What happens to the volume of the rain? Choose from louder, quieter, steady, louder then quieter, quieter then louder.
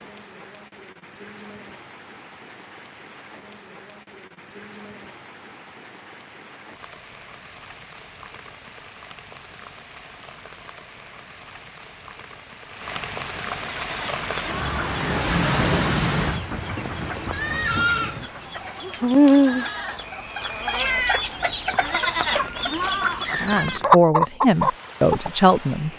louder then quieter.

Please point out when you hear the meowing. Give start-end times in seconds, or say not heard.
not heard.